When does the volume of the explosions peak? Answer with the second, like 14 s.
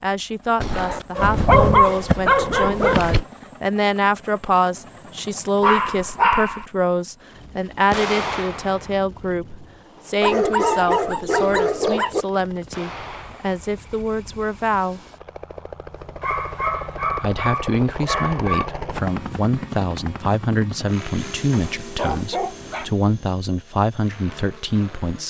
8 s.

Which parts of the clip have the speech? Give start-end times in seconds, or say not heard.
0.0-15.0, 17.2-25.2.